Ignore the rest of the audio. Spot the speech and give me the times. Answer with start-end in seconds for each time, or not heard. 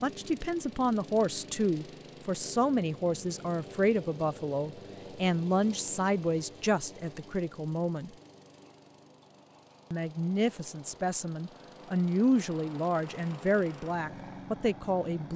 0.0-8.1, 9.9-15.3.